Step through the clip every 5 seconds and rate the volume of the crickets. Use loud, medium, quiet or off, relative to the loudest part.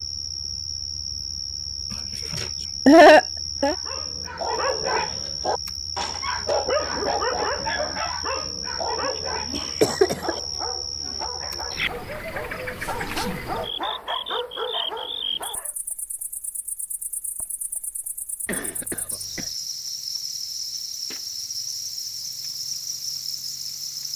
loud, loud, loud, medium, loud.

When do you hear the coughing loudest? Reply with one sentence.
The loudest moment of the coughing is at 3 seconds.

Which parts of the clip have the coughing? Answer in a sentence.
The coughing can be heard from 2.3 to 3.8 s, from 9.5 to 10.4 s and from 18.4 to 19.5 s.